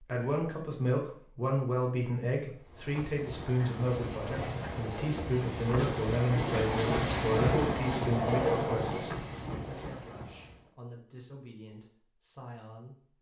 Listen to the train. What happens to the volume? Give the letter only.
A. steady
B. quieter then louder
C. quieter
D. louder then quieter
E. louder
D.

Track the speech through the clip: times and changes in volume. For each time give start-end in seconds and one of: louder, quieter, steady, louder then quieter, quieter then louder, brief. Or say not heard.
0.0-13.1 quieter.